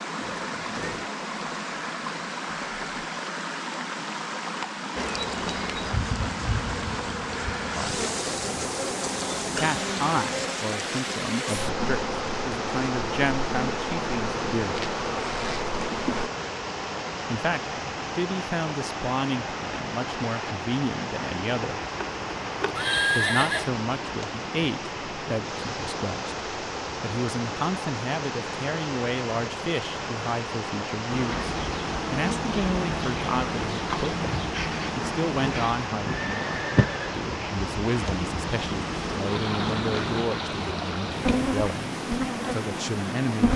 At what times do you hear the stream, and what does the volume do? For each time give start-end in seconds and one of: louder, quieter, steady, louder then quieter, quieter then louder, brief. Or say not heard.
0.0-43.5 steady.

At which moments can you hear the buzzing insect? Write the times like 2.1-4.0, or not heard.
5.0-16.3, 31.1-43.5.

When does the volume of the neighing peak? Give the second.
23 s.